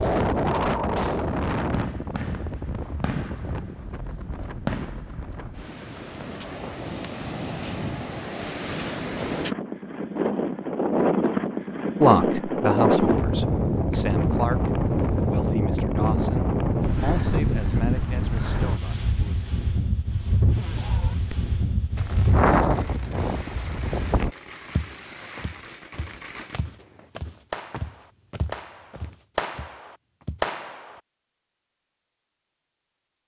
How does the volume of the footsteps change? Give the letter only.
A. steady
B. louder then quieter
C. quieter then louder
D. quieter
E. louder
B.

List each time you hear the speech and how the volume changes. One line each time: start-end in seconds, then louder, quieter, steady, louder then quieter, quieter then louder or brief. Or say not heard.
12.0-19.4 quieter.